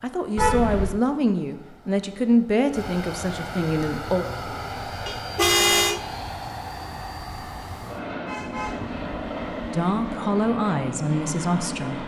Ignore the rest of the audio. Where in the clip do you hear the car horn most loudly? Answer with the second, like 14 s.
6 s.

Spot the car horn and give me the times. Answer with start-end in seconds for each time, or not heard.
0.3-1.0, 5.0-6.0, 8.2-10.2.